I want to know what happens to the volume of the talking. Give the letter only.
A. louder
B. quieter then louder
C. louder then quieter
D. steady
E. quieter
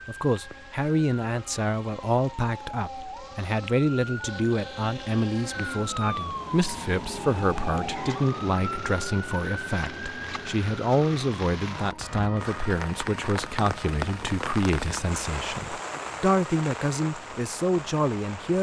D.